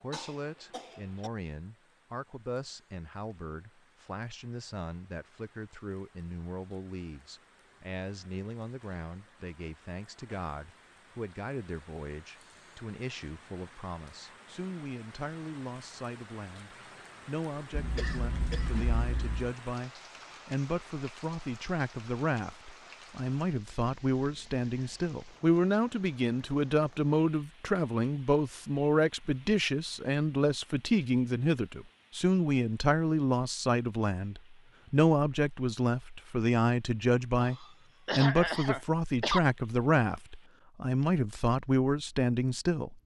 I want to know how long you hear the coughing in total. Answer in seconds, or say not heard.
5 s.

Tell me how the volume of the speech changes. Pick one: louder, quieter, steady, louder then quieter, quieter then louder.
louder.